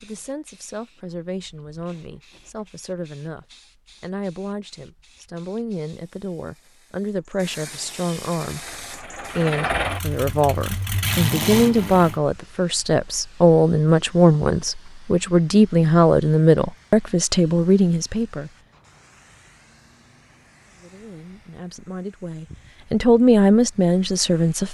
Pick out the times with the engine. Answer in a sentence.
The engine can be heard from 8.4 to 12.2 s.